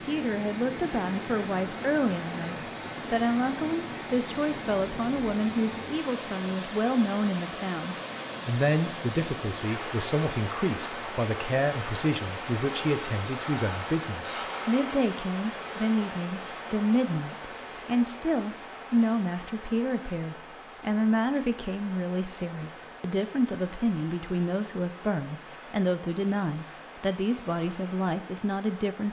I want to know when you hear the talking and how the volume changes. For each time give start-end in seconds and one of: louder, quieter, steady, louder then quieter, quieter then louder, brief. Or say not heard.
0.0-29.0 steady.